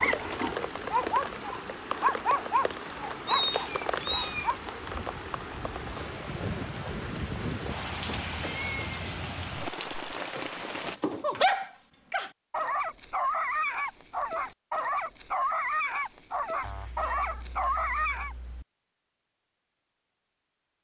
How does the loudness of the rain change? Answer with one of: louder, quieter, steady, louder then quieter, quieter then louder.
steady.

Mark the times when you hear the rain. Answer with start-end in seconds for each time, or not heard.
0.0-11.0.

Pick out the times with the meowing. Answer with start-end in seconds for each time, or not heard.
3.2-4.6, 7.5-9.1, 16.6-18.6.